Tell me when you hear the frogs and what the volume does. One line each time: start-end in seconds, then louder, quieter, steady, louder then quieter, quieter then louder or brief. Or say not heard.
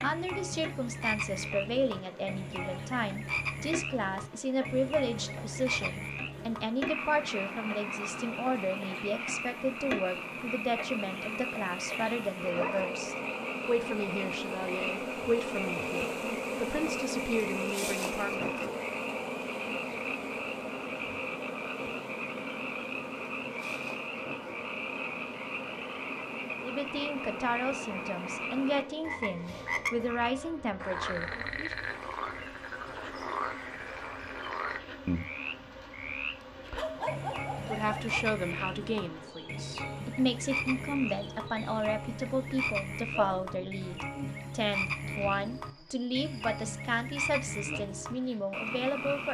0.0-49.3 steady.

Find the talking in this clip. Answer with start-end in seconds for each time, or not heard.
0.0-18.8, 26.6-31.7, 37.6-49.3.